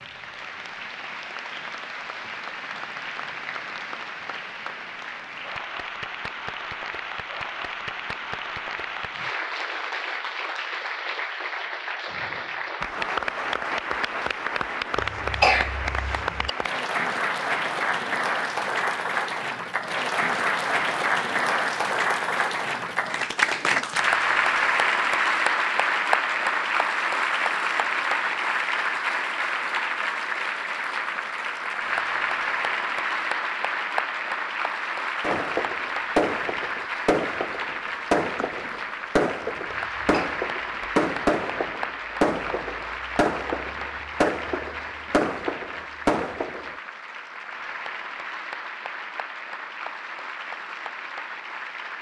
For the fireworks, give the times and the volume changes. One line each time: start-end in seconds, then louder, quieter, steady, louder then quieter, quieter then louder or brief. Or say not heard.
35.2-46.8 steady.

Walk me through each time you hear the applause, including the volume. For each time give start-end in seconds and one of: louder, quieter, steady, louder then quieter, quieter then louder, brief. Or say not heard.
0.0-51.9 louder then quieter.